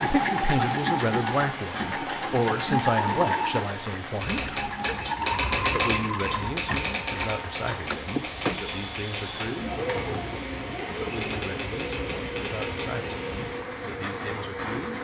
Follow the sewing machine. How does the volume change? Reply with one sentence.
The loudness of the sewing machine goes down.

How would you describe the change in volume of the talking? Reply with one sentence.
The volume of the talking goes down.